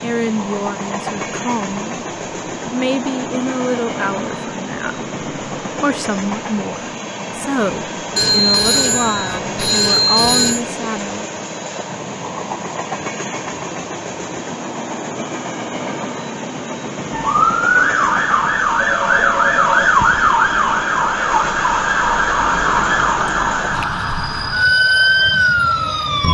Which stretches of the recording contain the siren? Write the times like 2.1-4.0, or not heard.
17.1-26.2.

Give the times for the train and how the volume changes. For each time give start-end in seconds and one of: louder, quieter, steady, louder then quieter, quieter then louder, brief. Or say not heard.
0.0-26.2 steady.